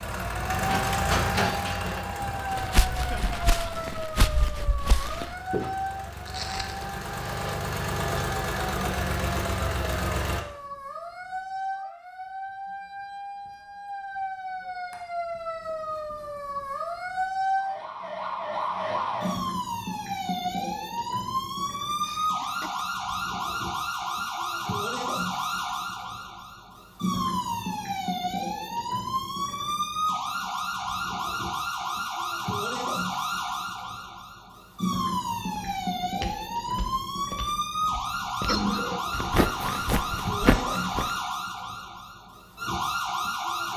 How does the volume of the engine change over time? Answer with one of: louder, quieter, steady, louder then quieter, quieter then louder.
quieter then louder.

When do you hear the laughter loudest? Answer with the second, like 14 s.
39 s.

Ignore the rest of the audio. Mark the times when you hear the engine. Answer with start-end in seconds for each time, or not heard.
0.0-10.4.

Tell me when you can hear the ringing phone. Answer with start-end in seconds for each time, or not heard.
not heard.